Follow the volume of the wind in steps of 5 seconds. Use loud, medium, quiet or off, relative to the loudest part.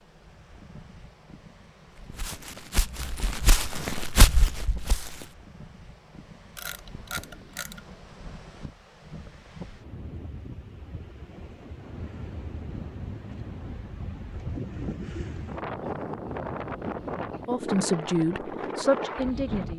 quiet, quiet, medium, loud.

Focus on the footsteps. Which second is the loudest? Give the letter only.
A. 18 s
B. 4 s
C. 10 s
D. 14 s
B.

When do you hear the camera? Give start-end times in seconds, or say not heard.
6.5-8.0.